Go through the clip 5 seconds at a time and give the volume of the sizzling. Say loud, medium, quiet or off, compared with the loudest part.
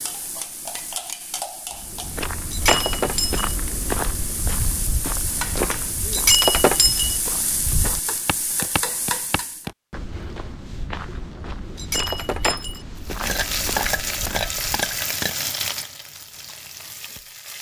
medium, medium, loud, medium.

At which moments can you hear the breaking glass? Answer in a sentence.
You can hear the breaking glass from 2.5 to 3.5 s, from 6.1 to 7.2 s and from 11.8 to 12.8 s.